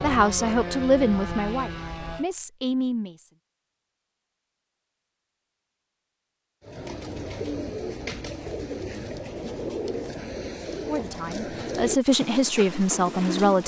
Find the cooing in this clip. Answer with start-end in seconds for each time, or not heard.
6.6-13.6.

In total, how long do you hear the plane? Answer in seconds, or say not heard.
2 s.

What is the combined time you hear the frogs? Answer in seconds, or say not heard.
not heard.